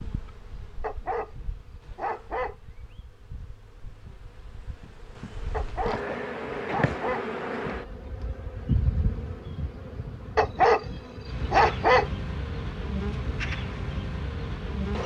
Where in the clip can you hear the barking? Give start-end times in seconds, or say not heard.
0.8-2.5, 5.5-7.2, 10.3-12.1.